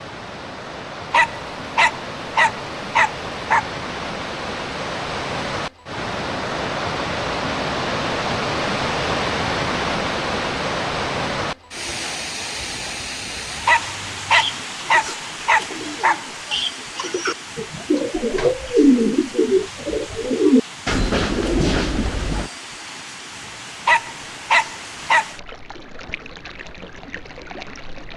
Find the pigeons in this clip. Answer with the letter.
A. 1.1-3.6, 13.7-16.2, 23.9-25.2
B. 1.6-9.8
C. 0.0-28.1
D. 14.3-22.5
D.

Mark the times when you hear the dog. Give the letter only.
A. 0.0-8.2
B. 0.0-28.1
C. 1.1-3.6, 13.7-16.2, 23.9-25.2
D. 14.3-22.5
C.